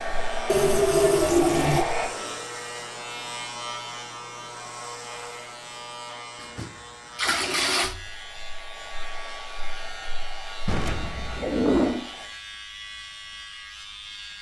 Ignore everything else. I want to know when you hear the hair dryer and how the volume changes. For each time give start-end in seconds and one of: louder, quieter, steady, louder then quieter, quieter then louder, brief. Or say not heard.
0.0-2.1 brief
8.0-12.3 steady.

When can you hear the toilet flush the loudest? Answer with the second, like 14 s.
1 s.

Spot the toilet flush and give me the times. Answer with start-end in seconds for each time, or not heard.
0.5-1.9, 6.5-8.0, 10.7-12.1.